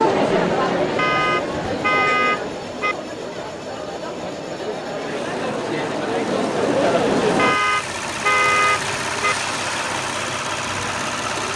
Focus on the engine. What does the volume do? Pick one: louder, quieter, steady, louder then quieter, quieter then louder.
louder.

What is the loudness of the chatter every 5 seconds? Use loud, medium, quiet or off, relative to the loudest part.
loud, loud, off.